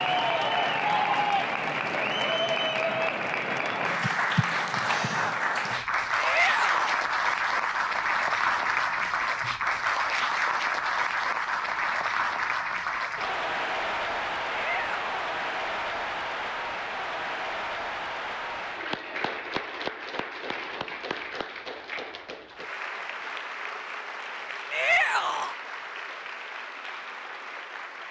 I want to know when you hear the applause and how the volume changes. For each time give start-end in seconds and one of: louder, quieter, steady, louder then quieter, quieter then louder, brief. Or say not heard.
0.0-28.0 quieter.